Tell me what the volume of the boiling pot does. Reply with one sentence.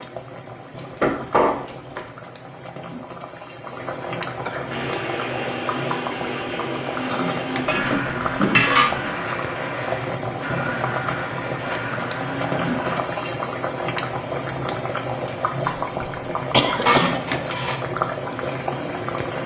The loudness of the boiling pot goes up.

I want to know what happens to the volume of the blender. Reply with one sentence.
The loudness of the blender stays about the same.